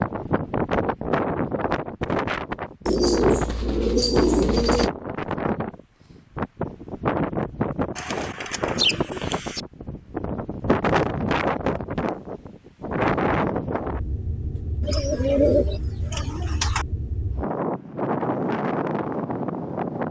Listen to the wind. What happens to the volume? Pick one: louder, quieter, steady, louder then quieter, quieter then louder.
steady.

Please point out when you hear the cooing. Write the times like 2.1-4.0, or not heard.
2.9-4.9, 8.0-9.6, 14.8-16.9.